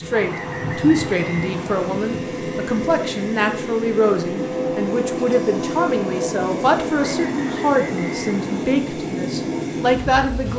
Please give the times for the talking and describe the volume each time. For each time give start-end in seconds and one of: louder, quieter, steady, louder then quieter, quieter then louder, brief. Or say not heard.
0.0-10.5 steady.